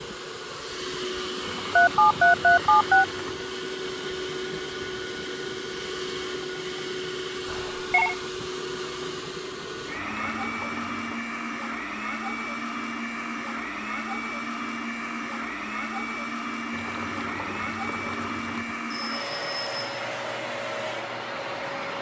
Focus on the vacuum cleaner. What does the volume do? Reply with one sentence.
The volume of the vacuum cleaner stays about the same.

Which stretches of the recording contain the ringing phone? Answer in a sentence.
The ringing phone can be heard from 1.8 to 3.0 s, from 7.5 to 8.2 s and from 18.9 to 19.9 s.